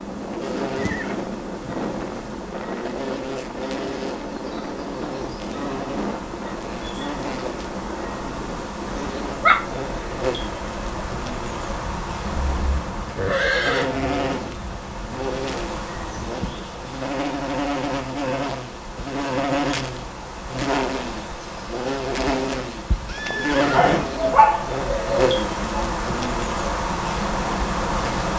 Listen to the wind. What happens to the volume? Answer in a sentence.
The volume of the wind goes down.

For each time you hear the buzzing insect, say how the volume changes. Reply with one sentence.
You can hear the buzzing insect from 0.0 to 28.3 s, getting louder.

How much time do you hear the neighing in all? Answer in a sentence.
You can hear the neighing for 4 seconds altogether.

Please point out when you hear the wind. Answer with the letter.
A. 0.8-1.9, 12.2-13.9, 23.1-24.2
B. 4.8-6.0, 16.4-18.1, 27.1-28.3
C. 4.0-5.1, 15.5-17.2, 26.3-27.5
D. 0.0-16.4
D.